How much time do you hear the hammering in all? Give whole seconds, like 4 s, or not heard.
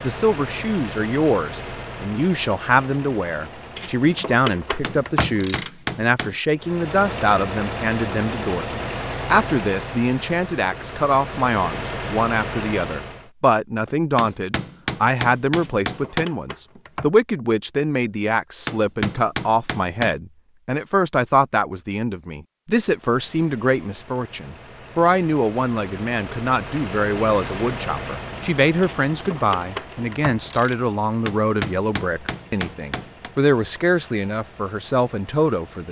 7 s.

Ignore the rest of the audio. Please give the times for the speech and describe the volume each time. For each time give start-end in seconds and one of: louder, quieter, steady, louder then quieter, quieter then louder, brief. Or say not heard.
0.0-35.8 steady.